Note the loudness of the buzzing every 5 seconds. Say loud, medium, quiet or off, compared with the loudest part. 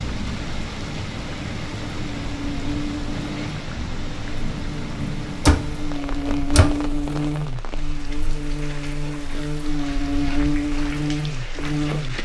medium, loud, loud.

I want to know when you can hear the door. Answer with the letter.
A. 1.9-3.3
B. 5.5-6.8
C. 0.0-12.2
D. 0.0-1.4
B.